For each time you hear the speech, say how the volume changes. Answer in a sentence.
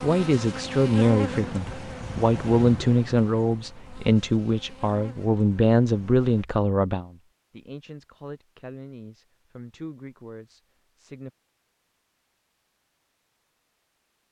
You can hear the speech from 0.0 to 11.3 s, getting quieter.